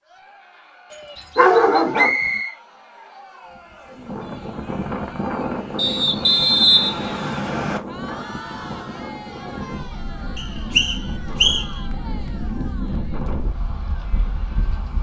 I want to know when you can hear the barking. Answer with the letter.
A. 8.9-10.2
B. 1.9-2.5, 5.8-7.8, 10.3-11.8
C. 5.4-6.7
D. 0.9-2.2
D.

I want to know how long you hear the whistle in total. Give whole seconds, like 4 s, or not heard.
4 s.